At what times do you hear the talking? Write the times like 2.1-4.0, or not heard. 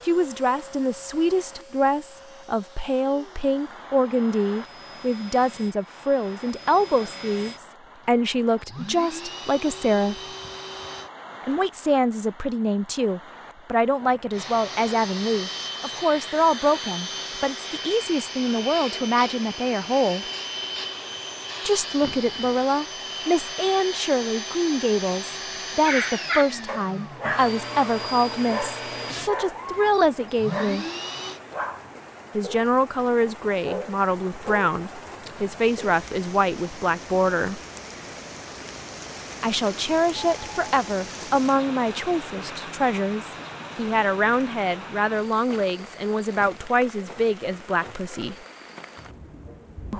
0.1-10.2, 11.4-20.2, 21.6-30.9, 32.4-37.6, 39.4-48.4.